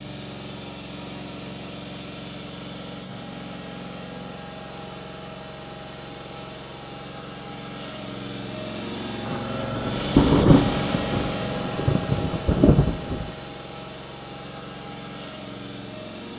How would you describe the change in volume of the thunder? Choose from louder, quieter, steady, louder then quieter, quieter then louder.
quieter then louder.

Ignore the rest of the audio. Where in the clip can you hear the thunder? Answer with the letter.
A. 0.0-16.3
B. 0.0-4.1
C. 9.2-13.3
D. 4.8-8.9
C.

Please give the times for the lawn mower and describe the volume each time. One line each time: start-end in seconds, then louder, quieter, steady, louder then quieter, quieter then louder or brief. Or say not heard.
0.0-16.3 louder then quieter.